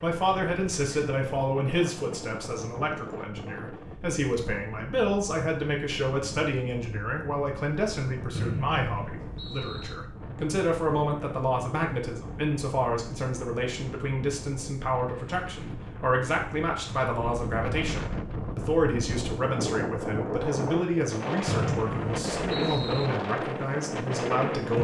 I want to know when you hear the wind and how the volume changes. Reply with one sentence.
You can hear the wind from 0.0 to 24.7 s, getting louder.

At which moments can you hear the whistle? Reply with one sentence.
The whistle can be heard from 8.3 to 9.9 s and from 21.4 to 23.1 s.